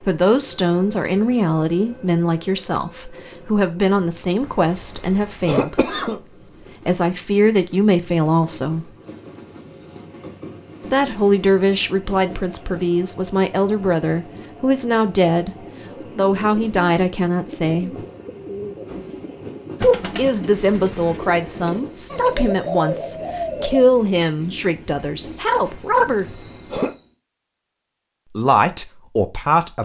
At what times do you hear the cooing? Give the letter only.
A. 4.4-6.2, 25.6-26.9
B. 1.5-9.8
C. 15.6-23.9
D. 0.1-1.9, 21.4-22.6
C.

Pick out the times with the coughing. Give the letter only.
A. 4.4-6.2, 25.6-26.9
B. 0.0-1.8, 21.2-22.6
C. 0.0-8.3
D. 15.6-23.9
A.